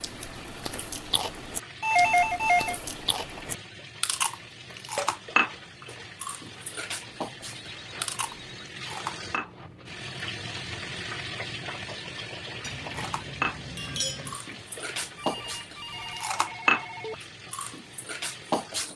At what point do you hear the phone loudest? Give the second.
2 s.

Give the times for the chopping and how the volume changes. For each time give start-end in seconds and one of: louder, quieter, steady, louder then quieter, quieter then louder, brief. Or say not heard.
not heard.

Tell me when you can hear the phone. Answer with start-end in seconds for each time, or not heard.
1.8-2.8, 7.0-8.7, 15.2-17.1.